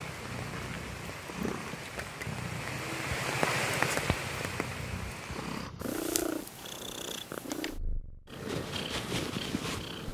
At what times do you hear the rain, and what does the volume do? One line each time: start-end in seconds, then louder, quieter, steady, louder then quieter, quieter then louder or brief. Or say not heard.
0.0-5.7 louder then quieter.